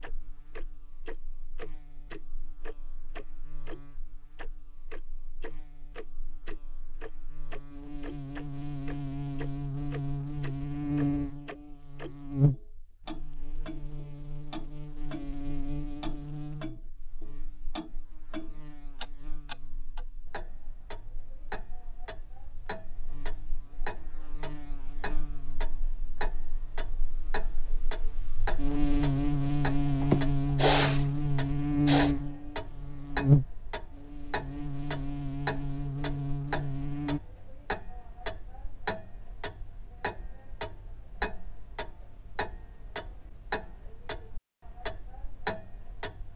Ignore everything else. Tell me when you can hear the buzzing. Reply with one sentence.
The buzzing can be heard from 0.0 to 37.2 s.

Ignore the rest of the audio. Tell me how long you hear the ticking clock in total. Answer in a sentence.
You can hear the ticking clock for 46 seconds altogether.